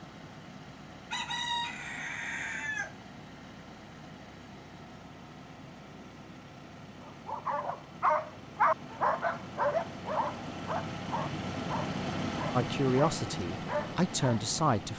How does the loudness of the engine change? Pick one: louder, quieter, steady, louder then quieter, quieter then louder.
louder.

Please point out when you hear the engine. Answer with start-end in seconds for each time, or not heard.
0.0-14.9.